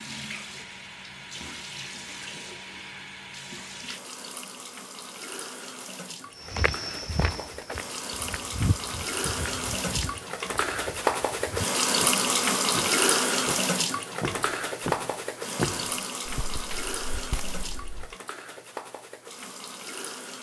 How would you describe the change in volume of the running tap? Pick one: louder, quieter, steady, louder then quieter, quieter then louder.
louder then quieter.